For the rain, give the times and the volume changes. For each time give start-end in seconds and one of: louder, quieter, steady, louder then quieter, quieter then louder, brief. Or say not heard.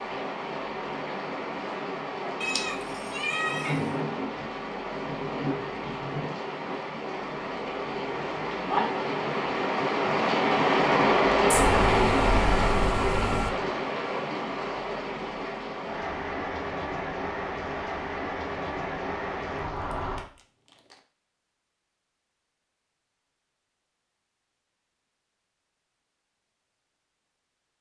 0.0-20.2 louder then quieter.